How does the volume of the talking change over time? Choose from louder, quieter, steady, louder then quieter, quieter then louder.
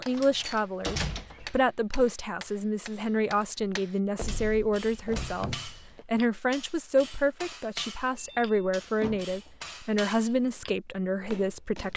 steady.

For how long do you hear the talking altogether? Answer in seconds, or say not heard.
12 s.